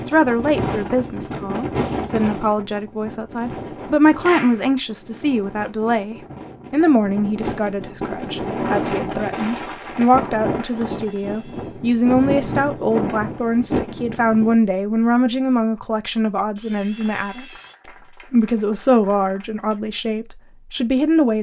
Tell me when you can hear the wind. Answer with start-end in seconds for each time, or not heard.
0.0-14.6.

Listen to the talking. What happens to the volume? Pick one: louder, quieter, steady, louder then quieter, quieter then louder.
steady.